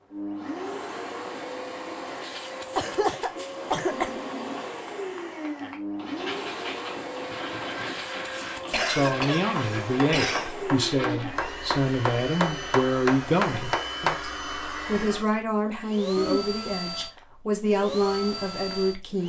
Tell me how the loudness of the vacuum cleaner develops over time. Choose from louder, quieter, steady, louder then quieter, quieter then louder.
steady.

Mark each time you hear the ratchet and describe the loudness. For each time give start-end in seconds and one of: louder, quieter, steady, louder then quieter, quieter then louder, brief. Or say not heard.
not heard.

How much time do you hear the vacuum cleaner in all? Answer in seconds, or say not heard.
19 s.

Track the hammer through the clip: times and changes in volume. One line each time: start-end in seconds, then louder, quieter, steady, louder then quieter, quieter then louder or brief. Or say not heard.
3.9-14.2 louder.